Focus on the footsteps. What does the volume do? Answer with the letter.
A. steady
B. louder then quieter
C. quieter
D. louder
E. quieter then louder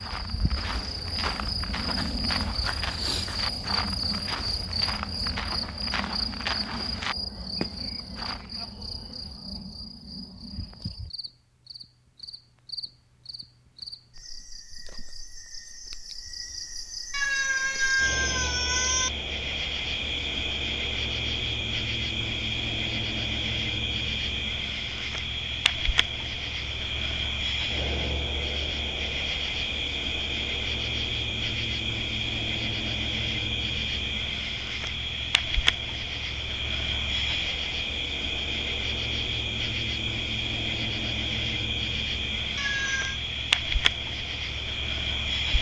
D.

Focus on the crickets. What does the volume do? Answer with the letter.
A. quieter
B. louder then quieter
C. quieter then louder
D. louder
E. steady
C.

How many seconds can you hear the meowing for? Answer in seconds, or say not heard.
3 s.